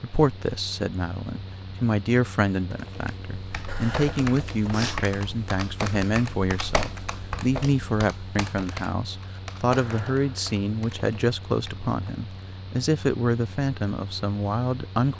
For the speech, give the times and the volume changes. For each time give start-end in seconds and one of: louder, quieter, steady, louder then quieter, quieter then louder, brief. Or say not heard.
0.0-15.1 steady.